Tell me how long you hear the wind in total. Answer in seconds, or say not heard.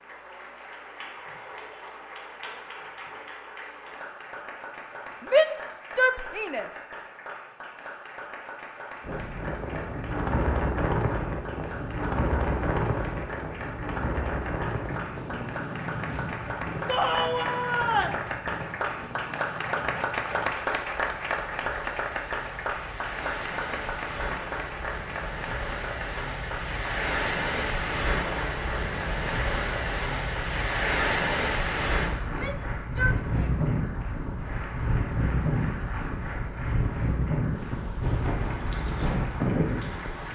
31 s.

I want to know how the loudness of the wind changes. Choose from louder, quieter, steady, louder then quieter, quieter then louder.
quieter then louder.